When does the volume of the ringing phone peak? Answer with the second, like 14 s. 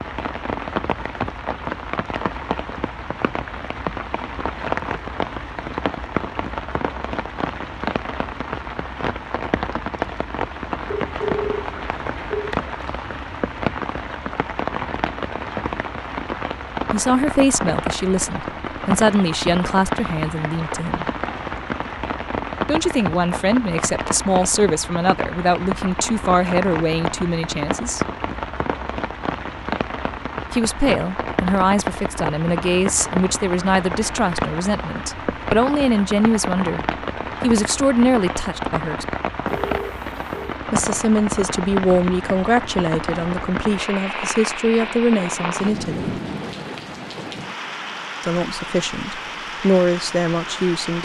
11 s.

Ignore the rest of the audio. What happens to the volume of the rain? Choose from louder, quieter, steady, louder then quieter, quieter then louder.
steady.